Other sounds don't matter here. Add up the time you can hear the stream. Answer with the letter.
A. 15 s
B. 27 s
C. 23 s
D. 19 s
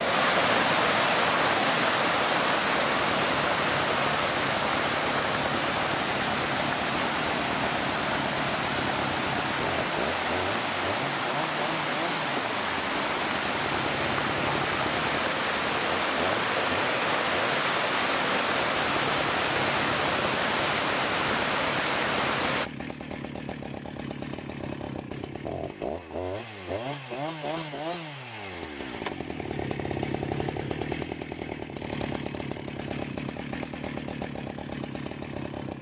C.